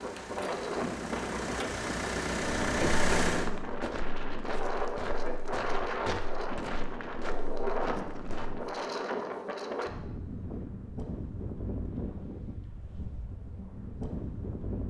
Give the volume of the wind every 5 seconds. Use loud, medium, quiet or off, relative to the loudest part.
loud, loud, medium.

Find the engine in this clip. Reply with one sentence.
The engine can be heard from 0.0 to 3.5 s.